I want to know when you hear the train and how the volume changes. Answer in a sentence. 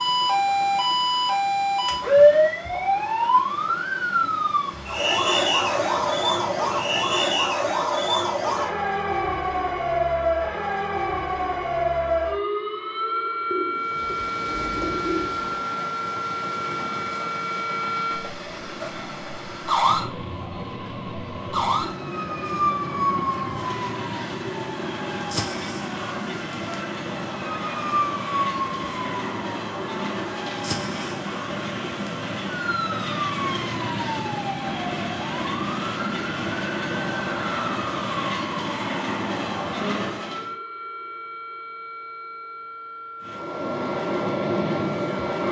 The train can be heard from 0.0 to 7.5 s, at a steady volume; from 13.7 to 40.5 s, getting louder; and briefly from 43.2 to 45.4 s.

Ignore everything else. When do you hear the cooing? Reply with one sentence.
You can hear the cooing from 13.5 to 15.7 s.